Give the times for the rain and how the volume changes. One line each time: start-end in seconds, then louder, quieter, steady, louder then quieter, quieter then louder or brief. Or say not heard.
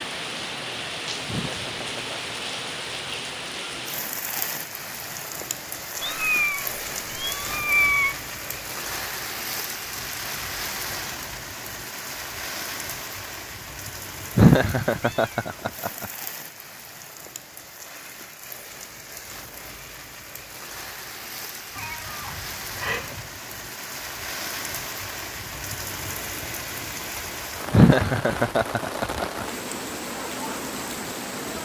0.0-31.6 quieter then louder.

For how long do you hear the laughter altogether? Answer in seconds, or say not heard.
5 s.